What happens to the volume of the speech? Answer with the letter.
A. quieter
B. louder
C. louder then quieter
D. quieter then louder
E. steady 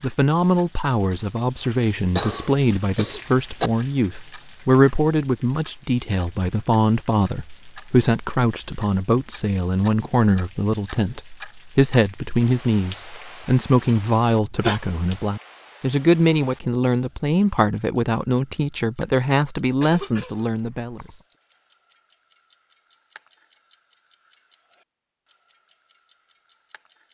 E.